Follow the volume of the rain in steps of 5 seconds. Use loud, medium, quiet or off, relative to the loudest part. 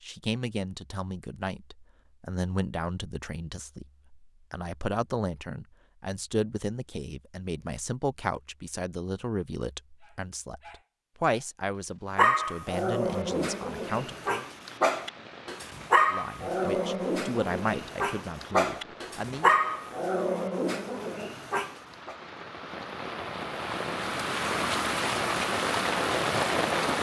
off, off, quiet, quiet, medium, loud.